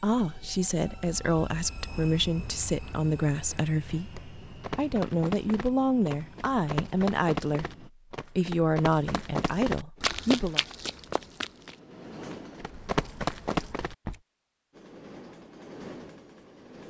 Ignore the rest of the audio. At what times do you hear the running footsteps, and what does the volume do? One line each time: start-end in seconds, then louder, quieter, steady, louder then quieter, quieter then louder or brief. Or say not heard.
4.5-14.2 louder.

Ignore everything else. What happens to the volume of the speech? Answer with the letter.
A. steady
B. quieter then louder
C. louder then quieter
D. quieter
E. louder
A.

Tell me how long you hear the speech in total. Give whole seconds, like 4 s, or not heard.
11 s.